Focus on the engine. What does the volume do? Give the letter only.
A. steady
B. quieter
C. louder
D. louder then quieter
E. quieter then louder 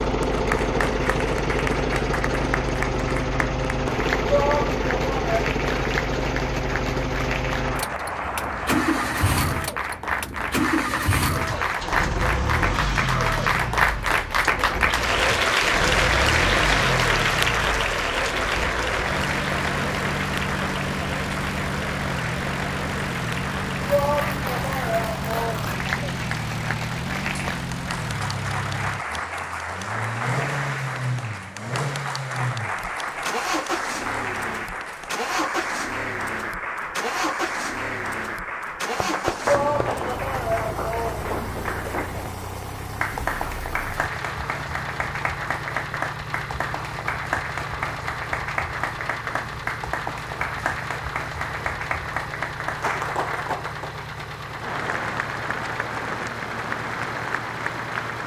B.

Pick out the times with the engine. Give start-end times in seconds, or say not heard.
0.0-58.2.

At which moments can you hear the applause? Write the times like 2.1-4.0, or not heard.
0.2-58.2.